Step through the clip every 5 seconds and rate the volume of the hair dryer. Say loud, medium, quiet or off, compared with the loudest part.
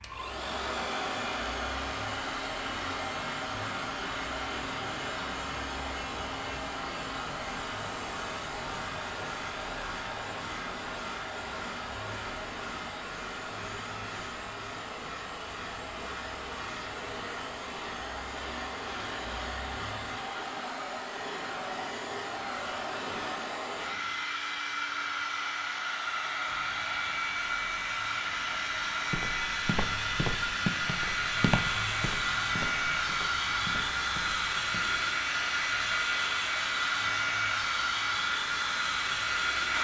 medium, medium, medium, medium, medium, loud, loud, loud.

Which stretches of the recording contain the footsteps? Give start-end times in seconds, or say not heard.
29.1-35.0.